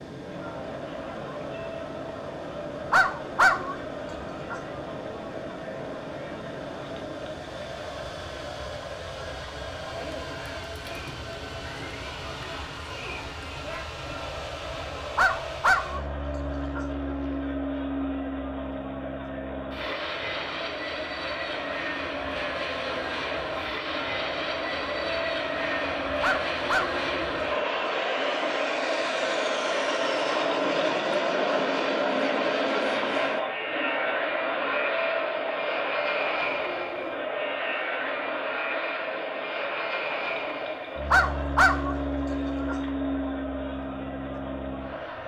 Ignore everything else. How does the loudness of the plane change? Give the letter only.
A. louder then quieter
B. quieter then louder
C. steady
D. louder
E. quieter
D.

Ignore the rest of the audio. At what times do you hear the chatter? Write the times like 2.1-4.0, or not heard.
0.0-45.2.